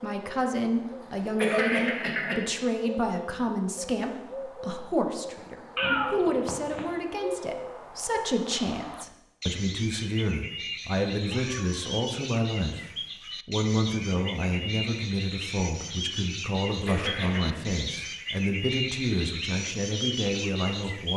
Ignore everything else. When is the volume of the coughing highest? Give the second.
2 s.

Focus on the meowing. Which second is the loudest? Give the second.
6 s.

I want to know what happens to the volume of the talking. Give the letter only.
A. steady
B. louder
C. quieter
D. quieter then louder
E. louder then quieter
A.